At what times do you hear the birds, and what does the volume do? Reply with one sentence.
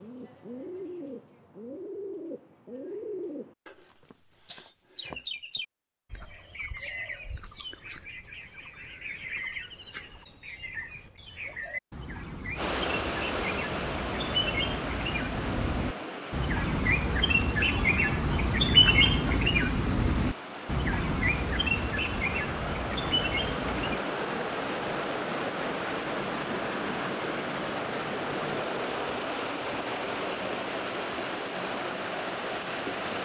The birds can be heard from 0.0 to 24.0 s, getting louder.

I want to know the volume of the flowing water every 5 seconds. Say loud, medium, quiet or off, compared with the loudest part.
off, off, loud, medium, loud, loud, loud.